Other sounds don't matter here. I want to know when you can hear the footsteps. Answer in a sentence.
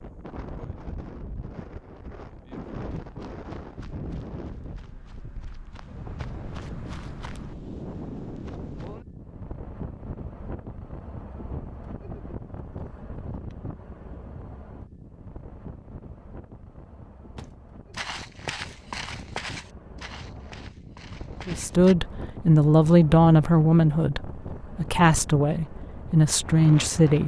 You can hear the footsteps from 2.7 to 9.1 s and from 17.4 to 21.9 s.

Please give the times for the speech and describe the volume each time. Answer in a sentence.
You can hear the speech from 21.4 to 27.2 s, getting quieter then louder.